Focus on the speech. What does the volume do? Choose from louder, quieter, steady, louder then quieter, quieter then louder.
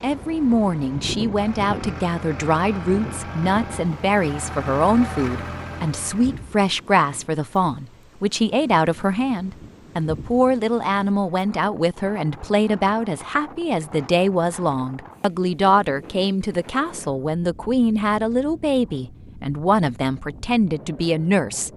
steady.